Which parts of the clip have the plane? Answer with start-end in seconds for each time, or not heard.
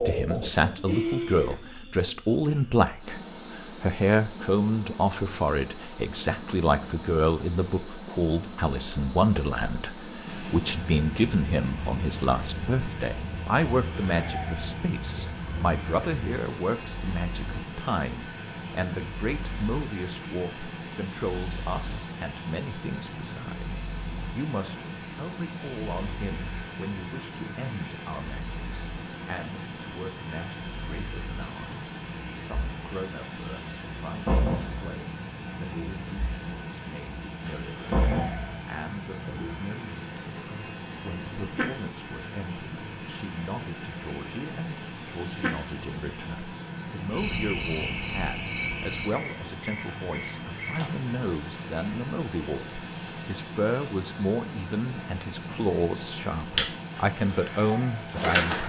10.2-58.6.